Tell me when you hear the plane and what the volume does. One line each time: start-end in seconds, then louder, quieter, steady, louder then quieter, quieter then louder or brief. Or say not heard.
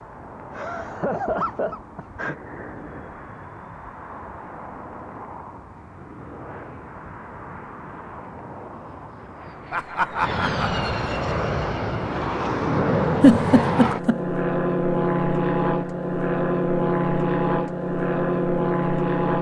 0.0-19.3 louder.